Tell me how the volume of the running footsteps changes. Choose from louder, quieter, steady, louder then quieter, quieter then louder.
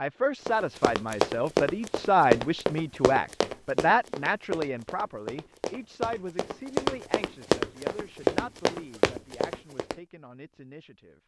quieter then louder.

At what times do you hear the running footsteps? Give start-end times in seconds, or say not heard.
0.5-9.9.